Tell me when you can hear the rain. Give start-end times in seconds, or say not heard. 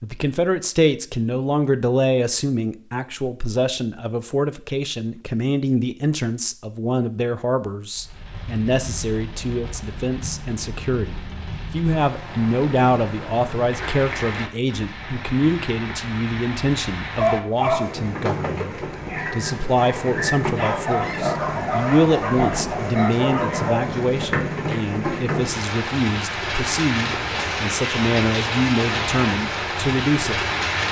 8.0-30.8.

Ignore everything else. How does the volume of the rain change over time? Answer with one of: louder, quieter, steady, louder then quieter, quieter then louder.
louder.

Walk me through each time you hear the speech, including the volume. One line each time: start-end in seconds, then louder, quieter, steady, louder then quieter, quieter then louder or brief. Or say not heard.
0.0-30.8 steady.